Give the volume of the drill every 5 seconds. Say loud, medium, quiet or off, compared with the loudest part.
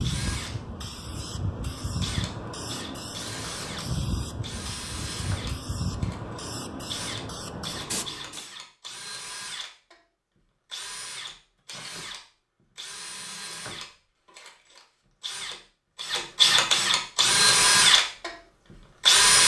quiet, quiet, quiet, loud.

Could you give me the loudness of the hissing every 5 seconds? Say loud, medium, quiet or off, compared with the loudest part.
loud, loud, off, off.